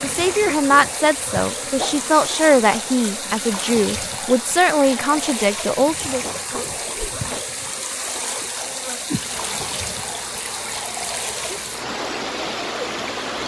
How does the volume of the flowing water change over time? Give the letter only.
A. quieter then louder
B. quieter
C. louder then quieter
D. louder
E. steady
E.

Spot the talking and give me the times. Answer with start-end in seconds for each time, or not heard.
0.0-6.2.